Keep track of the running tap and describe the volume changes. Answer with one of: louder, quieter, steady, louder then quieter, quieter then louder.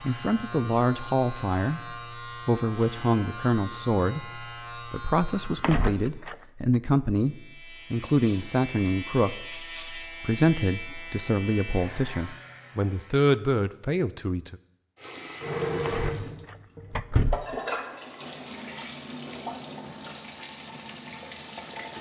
quieter.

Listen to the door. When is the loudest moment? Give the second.
17 s.